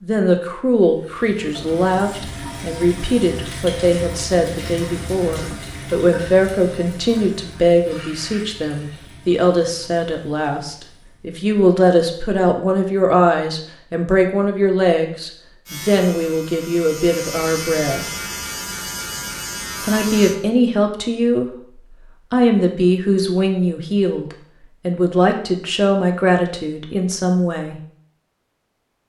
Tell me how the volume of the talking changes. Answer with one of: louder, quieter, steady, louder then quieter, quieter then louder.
steady.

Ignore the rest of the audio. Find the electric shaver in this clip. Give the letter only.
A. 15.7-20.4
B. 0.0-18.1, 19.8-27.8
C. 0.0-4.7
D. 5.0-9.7
A.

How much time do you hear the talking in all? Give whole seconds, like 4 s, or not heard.
26 s.